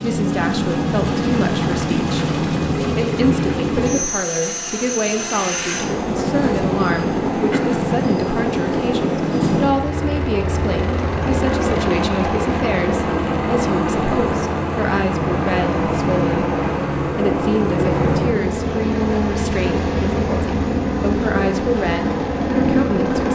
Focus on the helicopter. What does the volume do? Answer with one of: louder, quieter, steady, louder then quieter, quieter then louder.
steady.